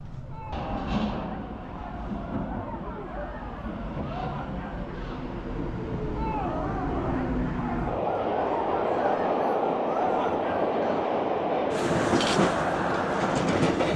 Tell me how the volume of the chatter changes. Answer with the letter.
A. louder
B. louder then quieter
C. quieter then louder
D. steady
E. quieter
A.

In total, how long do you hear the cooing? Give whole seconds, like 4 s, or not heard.
not heard.